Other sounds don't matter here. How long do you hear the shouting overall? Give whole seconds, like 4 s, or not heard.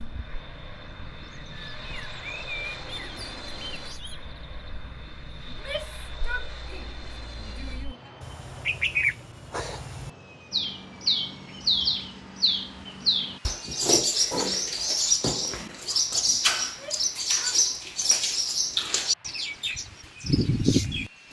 4 s.